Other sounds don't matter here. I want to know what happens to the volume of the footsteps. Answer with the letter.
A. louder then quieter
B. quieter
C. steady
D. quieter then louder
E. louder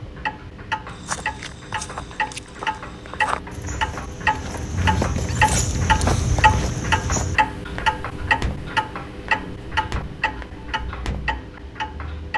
A.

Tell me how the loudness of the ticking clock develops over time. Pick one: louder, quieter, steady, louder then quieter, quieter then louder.
louder then quieter.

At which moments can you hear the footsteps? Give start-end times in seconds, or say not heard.
0.8-11.3.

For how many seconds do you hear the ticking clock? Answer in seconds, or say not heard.
12 s.